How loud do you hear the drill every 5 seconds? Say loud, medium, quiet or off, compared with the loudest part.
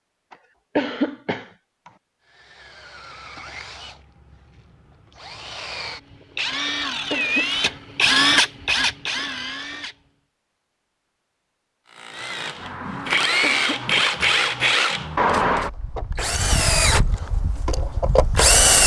quiet, loud, loud, loud.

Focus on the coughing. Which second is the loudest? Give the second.
1 s.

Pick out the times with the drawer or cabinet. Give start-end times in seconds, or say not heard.
not heard.